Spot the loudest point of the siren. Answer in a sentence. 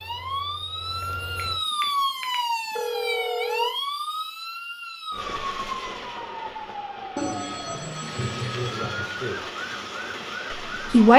The volume of the siren peaks at 2 seconds.